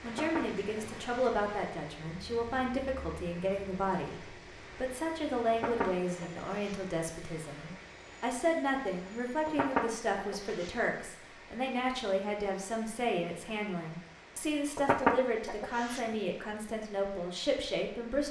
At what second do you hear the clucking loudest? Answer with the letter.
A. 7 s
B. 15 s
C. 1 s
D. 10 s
B.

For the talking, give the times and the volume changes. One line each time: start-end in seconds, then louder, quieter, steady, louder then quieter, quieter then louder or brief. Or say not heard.
0.0-18.2 steady.